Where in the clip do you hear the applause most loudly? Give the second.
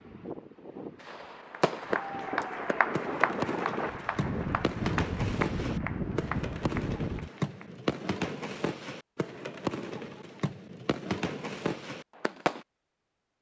3 s.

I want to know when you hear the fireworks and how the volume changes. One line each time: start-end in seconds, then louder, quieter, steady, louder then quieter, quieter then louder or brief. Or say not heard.
1.0-12.7 steady.